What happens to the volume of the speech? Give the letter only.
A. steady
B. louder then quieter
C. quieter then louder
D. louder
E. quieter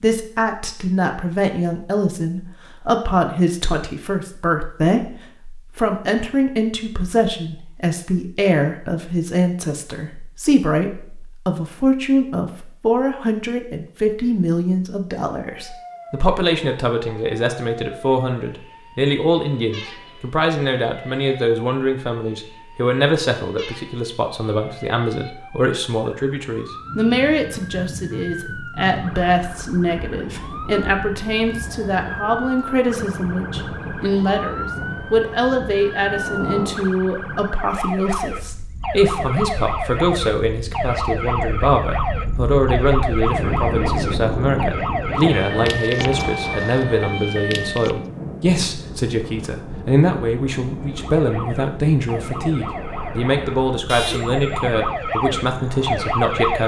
A.